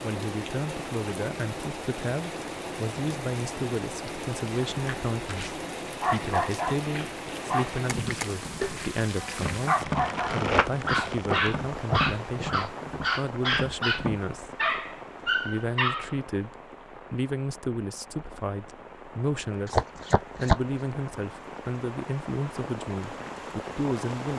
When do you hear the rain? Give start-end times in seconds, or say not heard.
0.0-24.3.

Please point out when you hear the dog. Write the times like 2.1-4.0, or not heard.
6.0-16.2.